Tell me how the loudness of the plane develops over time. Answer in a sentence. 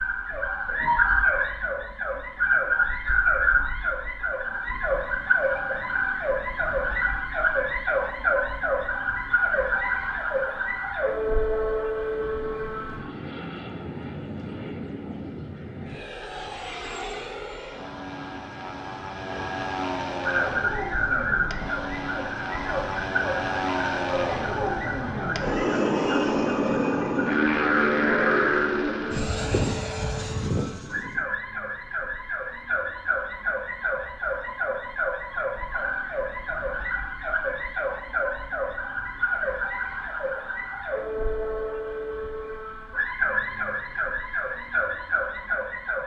The volume of the plane goes up.